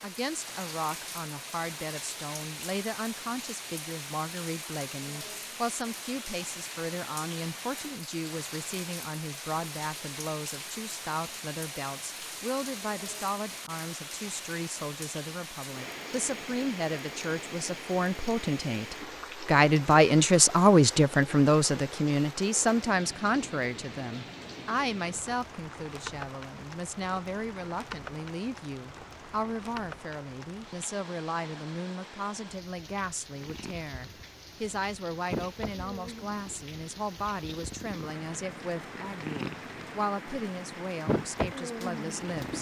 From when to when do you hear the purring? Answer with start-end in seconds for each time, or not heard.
33.3-42.5.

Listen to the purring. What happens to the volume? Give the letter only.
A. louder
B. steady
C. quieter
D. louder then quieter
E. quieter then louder
E.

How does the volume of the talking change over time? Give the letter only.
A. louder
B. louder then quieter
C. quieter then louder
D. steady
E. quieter
B.